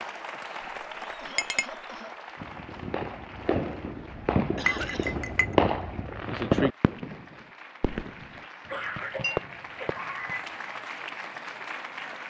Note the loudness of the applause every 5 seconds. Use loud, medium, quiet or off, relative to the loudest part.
loud, medium, loud.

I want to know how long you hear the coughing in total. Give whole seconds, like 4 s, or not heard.
4 s.